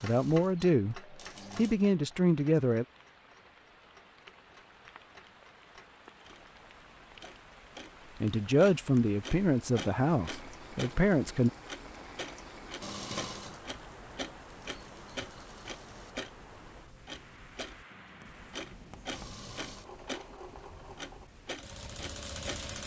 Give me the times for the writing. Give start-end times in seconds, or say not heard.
17.9-19.4.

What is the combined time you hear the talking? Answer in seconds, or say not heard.
6 s.